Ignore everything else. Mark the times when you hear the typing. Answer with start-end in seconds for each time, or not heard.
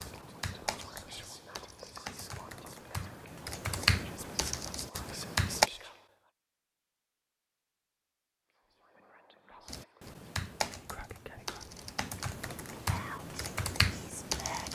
0.0-5.7, 9.7-14.7.